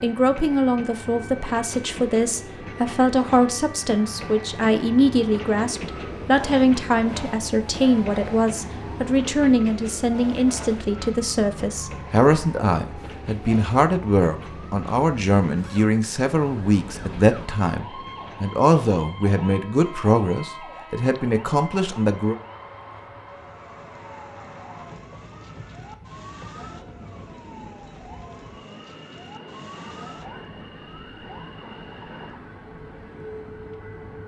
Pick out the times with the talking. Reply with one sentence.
The talking can be heard from 0.0 to 22.4 s.